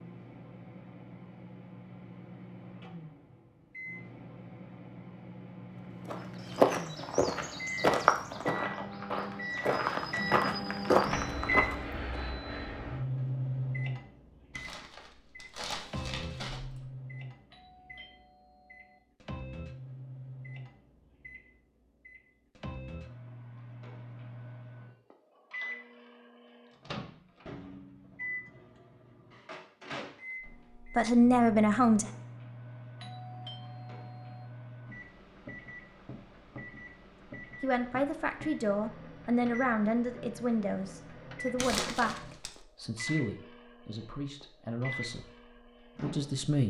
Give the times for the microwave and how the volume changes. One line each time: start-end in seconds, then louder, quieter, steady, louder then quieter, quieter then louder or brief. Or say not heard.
0.0-46.5 louder then quieter.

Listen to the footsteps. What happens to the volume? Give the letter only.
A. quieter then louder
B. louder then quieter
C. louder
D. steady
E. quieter
A.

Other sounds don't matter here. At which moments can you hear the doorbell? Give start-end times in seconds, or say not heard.
17.5-19.0, 33.0-34.5.